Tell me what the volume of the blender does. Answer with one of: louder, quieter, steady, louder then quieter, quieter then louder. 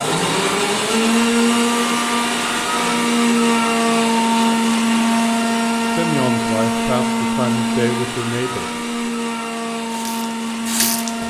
quieter.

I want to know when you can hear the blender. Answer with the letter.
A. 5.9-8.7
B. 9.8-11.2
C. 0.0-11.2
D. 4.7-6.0
C.